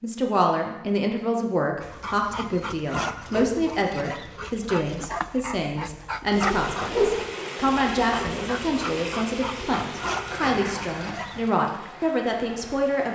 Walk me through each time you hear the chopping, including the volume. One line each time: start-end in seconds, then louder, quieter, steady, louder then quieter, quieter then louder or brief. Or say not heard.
not heard.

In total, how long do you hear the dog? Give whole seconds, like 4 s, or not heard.
10 s.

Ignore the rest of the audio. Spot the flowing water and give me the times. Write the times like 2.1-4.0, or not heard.
6.3-13.1.